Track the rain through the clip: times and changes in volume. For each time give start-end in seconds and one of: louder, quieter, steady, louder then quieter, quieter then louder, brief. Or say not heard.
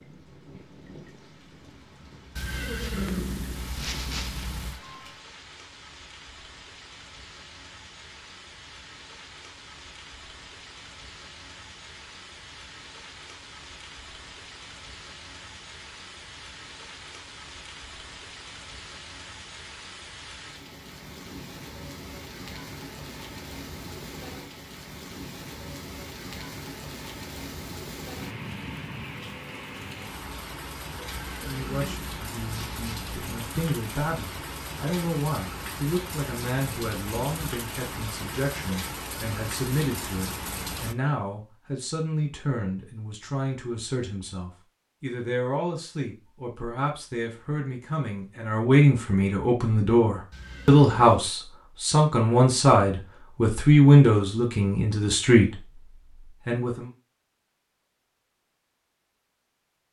0.0-41.0 louder.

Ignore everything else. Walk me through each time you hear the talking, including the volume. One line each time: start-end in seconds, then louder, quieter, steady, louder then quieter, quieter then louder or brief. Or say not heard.
31.4-55.6 louder
56.5-56.9 brief.